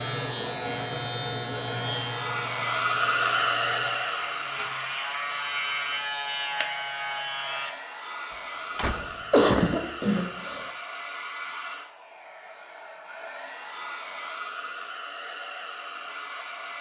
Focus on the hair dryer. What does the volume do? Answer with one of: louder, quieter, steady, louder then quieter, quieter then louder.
quieter.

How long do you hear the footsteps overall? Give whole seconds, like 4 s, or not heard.
not heard.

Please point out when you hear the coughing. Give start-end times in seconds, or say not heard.
8.8-10.7.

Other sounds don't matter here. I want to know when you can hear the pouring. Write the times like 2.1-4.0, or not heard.
not heard.